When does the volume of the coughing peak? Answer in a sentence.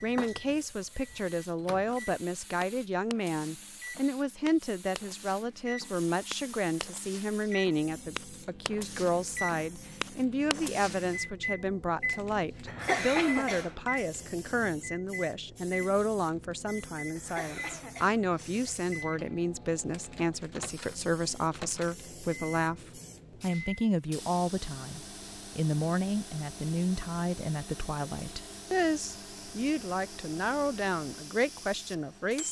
The volume of the coughing peaks at 13 seconds.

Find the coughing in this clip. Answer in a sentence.
You can hear the coughing from 12.7 to 13.8 s and from 17.1 to 18.6 s.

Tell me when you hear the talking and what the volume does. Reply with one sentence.
The talking can be heard from 0.0 to 32.4 s, at a steady volume.